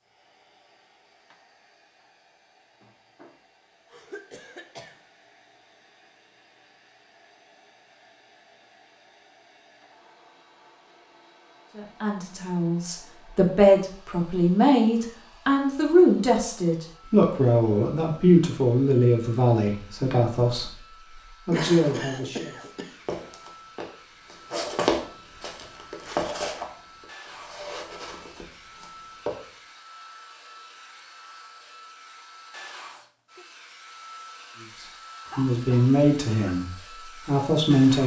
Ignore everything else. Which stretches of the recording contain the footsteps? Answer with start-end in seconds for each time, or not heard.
21.7-29.4.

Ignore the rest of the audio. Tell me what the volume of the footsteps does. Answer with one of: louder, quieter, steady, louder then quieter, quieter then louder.
louder then quieter.